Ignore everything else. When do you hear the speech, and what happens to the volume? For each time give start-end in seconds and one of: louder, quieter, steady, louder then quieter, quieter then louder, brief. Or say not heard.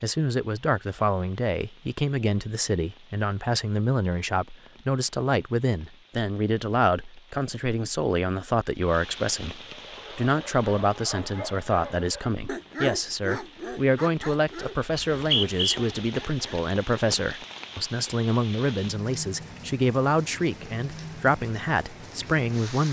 0.0-22.8 steady.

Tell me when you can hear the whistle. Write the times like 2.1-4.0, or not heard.
14.9-15.8.